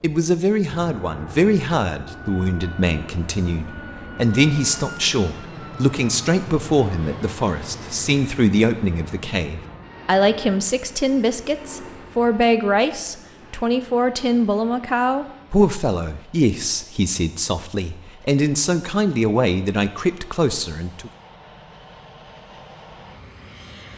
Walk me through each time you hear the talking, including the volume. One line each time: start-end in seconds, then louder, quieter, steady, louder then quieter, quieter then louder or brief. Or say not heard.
0.0-21.1 steady.